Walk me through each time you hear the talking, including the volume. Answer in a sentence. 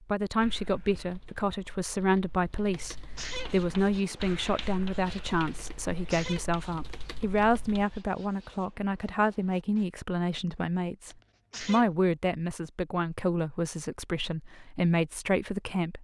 You can hear the talking from 0.1 to 15.9 s, at a steady volume.